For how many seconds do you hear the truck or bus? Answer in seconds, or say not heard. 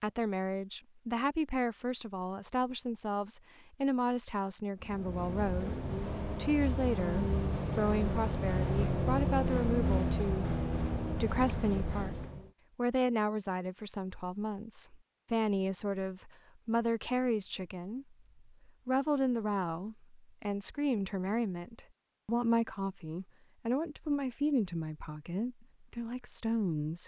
8 s.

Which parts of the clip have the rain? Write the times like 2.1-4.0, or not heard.
not heard.